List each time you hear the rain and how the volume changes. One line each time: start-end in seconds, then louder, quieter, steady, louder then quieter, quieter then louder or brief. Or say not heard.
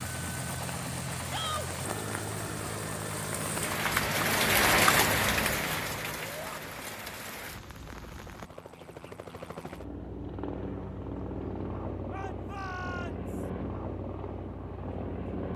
0.0-8.5 louder then quieter.